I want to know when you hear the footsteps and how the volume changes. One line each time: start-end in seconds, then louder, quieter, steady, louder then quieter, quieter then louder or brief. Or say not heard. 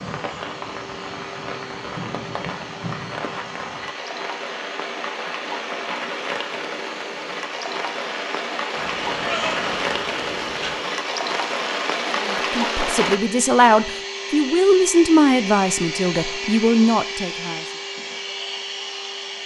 not heard.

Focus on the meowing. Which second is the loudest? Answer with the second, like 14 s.
9 s.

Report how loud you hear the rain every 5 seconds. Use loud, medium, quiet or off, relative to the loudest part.
medium, loud, loud, off.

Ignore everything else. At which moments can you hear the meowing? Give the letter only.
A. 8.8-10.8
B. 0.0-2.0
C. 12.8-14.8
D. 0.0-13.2
A.